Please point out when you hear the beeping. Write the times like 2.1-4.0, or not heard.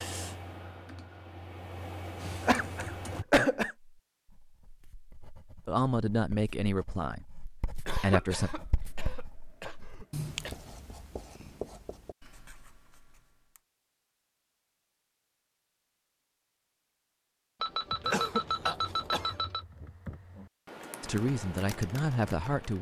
17.6-19.6.